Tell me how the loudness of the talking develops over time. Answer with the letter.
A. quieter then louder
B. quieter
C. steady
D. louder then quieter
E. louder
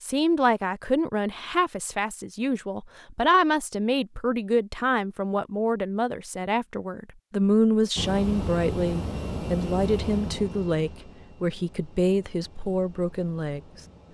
C.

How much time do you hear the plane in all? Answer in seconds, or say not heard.
6 s.